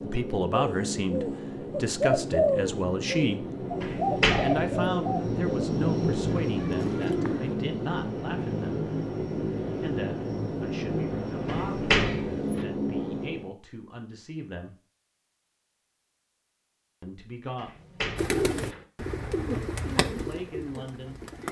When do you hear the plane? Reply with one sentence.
The plane can be heard from 0.0 to 13.5 s.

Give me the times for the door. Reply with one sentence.
The door can be heard from 3.8 to 4.8 s, from 11.4 to 12.7 s and from 17.6 to 18.9 s.